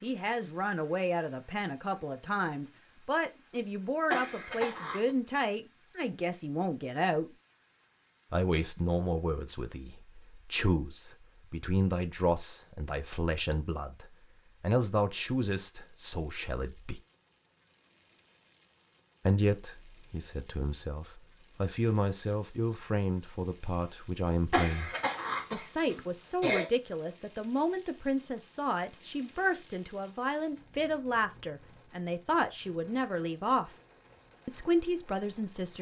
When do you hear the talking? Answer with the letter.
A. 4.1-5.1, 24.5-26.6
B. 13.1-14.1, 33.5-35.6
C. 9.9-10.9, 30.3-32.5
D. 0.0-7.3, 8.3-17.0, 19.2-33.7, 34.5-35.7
D.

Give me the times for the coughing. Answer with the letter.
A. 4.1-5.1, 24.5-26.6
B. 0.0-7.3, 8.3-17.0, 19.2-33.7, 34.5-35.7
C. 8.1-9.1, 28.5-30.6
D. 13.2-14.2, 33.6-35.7
A.